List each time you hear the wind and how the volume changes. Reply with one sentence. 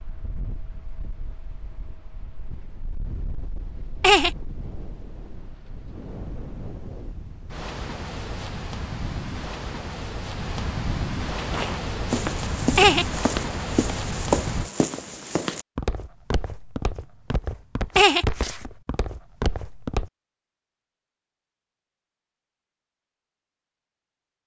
You can hear the wind from 0.0 to 14.7 s, getting louder.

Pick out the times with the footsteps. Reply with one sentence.
The footsteps can be heard from 11.3 to 20.1 s.